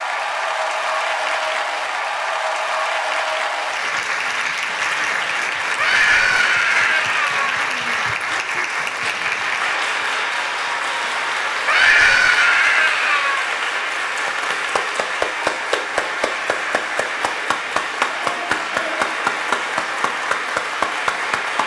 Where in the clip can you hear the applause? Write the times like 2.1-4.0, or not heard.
0.0-21.6.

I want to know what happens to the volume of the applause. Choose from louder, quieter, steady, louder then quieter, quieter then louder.
steady.